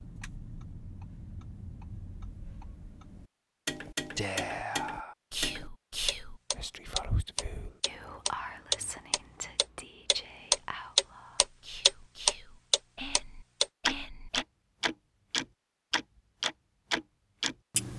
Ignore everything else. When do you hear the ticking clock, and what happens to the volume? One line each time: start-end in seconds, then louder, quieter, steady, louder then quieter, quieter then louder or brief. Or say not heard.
0.0-17.9 louder then quieter.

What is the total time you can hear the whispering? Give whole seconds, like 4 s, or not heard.
10 s.